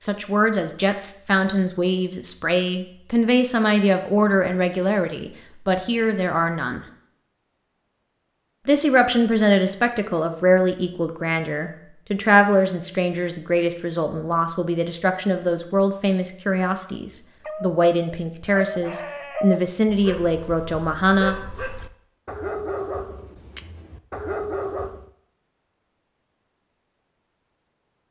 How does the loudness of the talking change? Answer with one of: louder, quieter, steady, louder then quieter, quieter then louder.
steady.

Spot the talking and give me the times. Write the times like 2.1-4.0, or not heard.
0.0-6.8, 8.7-21.4.